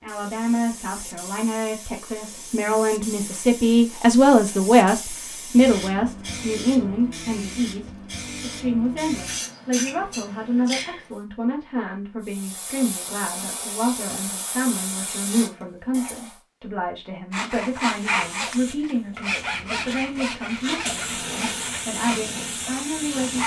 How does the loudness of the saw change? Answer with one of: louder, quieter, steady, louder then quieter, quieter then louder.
quieter.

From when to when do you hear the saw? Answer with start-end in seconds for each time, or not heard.
17.3-23.4.